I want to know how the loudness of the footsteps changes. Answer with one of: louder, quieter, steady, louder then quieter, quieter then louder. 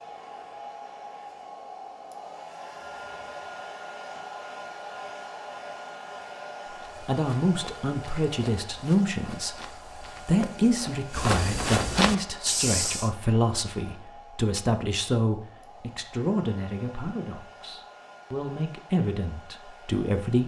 louder.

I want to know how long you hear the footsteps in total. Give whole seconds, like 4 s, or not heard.
6 s.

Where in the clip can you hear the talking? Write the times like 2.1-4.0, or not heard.
7.0-20.4.